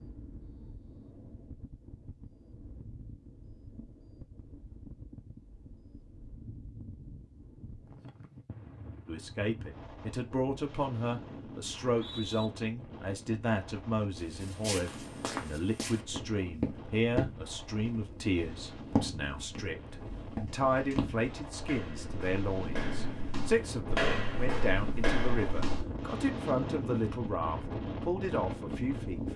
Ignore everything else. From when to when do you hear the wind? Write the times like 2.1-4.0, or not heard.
0.0-29.3.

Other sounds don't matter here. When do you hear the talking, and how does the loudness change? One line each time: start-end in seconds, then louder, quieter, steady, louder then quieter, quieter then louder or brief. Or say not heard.
9.1-29.3 steady.